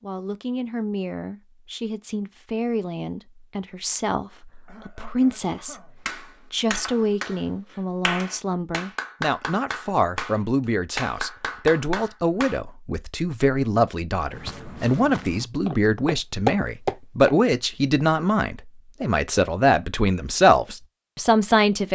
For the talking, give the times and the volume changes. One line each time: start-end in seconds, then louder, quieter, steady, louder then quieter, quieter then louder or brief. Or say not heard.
0.0-21.9 louder.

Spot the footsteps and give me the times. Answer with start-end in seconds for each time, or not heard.
14.2-17.4.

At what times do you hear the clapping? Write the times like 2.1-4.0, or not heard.
6.0-12.6.